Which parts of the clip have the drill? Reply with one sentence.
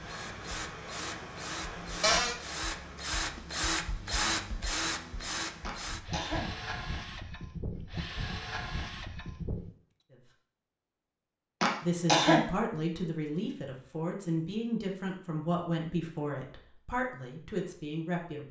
You can hear the drill from 0.0 to 9.7 s.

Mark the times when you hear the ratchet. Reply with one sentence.
You can't hear the ratchet here.